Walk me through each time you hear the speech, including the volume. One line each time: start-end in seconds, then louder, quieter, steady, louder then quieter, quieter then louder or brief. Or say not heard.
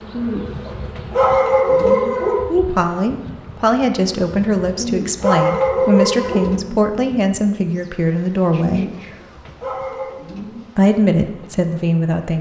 2.5-8.9 steady
10.8-12.3 brief.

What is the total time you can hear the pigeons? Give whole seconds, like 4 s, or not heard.
6 s.